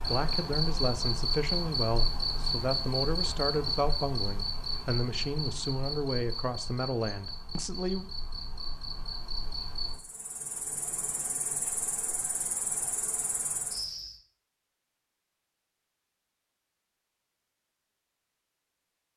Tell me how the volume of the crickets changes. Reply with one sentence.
The loudness of the crickets goes down.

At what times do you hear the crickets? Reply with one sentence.
The crickets can be heard from 0.0 to 14.2 s.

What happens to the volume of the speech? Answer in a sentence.
The loudness of the speech stays about the same.